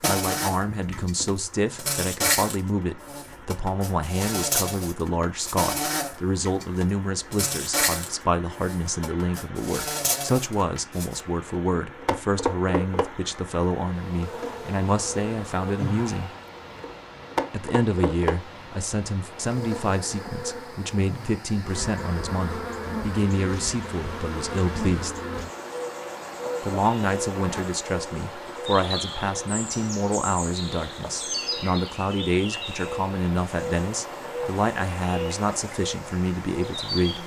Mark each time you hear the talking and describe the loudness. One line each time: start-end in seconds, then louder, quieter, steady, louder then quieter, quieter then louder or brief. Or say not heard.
0.1-16.3 steady
17.5-25.2 steady
26.6-37.2 steady.